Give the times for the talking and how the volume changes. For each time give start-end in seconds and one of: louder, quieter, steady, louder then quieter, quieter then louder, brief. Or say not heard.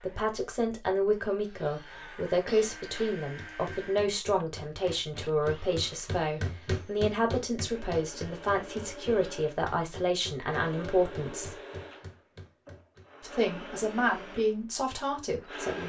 0.0-11.6 steady
13.2-15.8 brief.